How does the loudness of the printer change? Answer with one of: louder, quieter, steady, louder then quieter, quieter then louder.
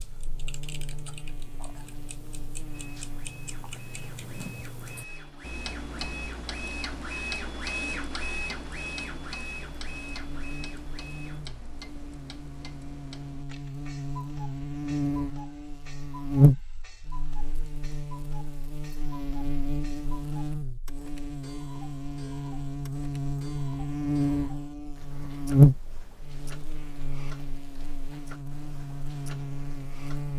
louder then quieter.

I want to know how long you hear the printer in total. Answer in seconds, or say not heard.
9 s.